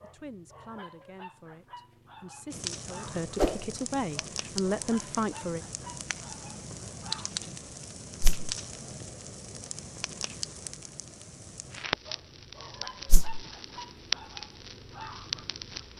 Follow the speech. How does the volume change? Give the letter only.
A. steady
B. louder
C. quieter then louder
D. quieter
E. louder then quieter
B.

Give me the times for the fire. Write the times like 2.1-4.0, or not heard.
2.5-15.9.